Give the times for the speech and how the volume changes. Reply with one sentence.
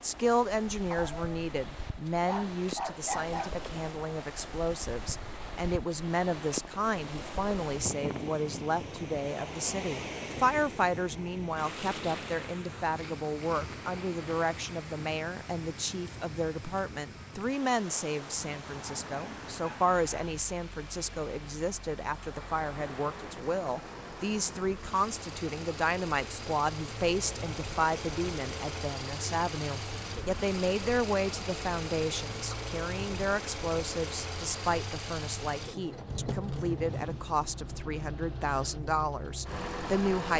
You can hear the speech from 0.0 to 40.3 s, at a steady volume.